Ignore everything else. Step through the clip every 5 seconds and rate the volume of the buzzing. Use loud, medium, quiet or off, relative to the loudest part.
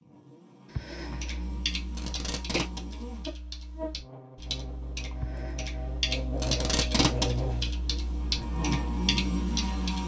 medium, loud.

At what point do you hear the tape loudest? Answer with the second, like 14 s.
7 s.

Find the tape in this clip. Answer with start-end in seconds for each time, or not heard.
1.9-2.8, 6.3-7.3.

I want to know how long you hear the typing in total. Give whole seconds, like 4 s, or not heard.
9 s.